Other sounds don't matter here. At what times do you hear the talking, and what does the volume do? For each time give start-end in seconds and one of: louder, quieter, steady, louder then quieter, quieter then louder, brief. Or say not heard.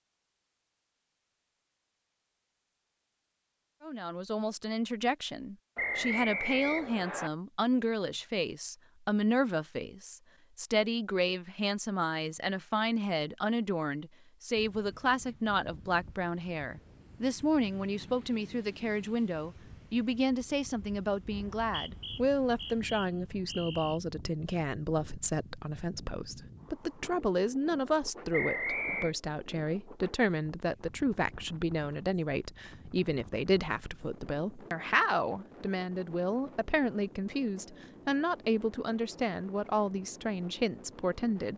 3.8-41.5 steady.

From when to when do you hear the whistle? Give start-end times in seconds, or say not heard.
5.8-7.3, 21.6-24.0, 28.3-29.1.